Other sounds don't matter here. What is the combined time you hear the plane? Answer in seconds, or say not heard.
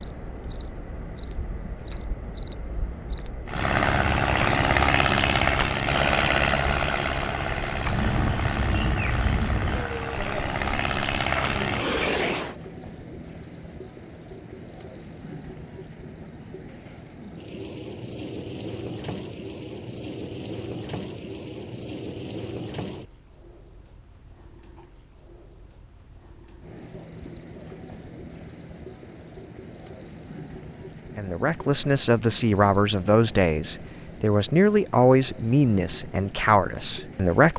9 s.